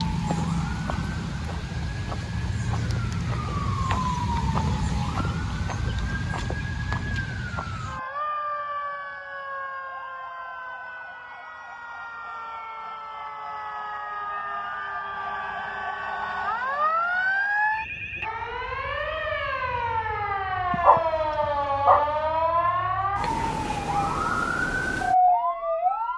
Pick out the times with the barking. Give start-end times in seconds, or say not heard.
20.7-22.1.